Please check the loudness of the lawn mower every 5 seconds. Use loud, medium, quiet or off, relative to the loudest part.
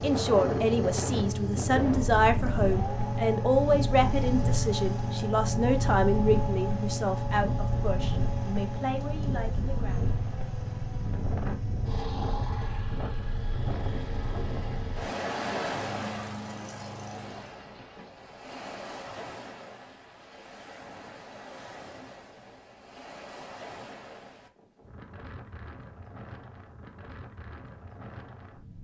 loud, loud, medium, medium, off, off.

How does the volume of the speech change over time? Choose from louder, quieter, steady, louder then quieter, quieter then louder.
quieter.